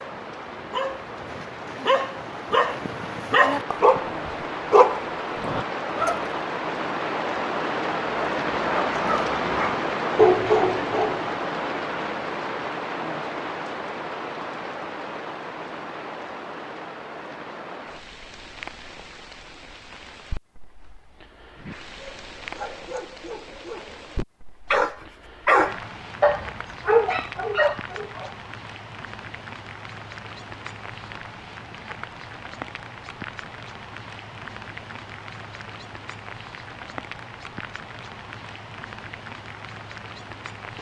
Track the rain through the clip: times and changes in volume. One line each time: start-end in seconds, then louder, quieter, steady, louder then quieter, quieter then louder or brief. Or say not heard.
0.0-40.7 quieter.